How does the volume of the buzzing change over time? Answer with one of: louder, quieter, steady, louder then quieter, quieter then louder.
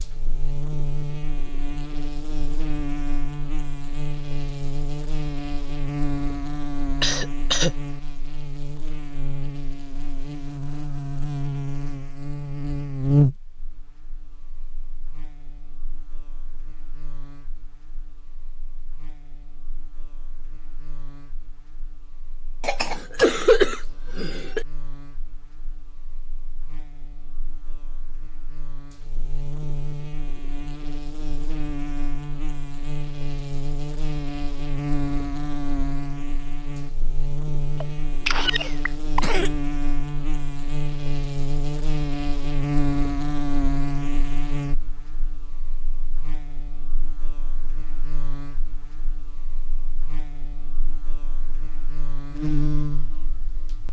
quieter then louder.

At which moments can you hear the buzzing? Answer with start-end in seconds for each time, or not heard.
0.0-53.8.